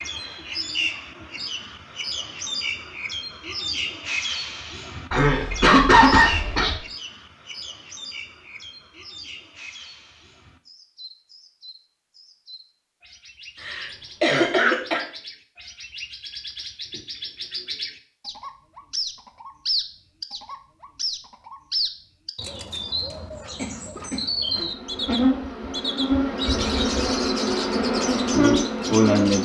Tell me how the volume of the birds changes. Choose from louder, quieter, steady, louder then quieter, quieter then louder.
quieter then louder.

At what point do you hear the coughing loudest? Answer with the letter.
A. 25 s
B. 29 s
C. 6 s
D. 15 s
C.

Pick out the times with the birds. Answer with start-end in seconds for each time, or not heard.
0.0-29.4.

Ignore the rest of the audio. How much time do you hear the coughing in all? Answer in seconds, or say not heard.
4 s.